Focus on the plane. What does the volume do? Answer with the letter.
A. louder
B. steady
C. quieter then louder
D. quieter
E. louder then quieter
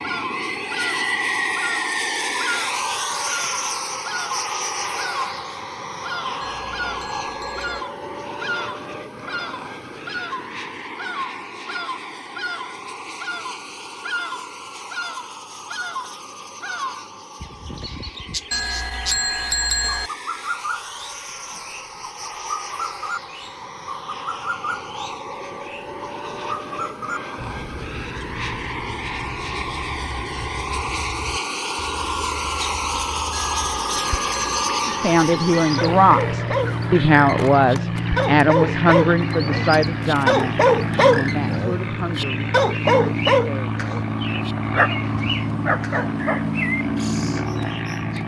C.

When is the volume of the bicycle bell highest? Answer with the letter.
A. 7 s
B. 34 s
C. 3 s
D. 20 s
D.